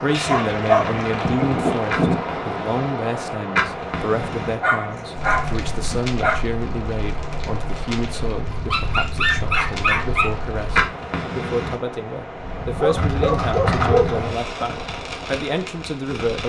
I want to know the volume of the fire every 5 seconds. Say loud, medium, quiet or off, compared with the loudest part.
loud, medium, loud, medium.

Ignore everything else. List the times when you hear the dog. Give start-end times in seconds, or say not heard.
0.1-2.2, 4.6-6.4, 8.4-10.3, 12.6-14.2.